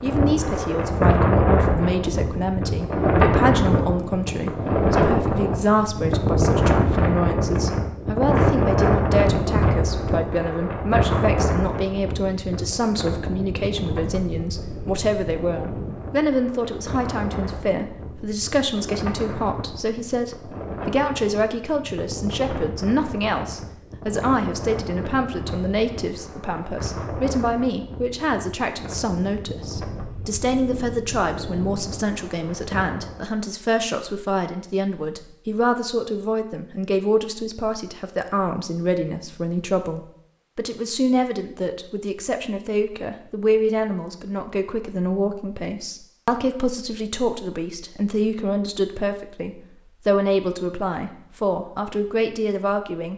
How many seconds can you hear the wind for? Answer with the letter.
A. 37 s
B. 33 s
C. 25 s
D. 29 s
B.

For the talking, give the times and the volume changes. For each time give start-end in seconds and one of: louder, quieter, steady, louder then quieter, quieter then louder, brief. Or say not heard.
0.0-53.1 steady.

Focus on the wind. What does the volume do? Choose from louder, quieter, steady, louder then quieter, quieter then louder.
quieter.